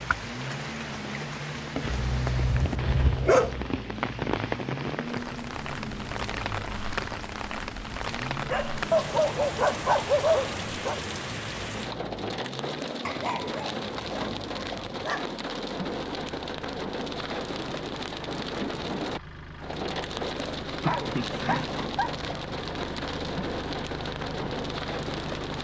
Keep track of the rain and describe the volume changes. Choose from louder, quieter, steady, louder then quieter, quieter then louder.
steady.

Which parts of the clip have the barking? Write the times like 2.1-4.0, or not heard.
1.9-3.7, 8.5-10.9, 13.1-15.3, 20.6-22.1.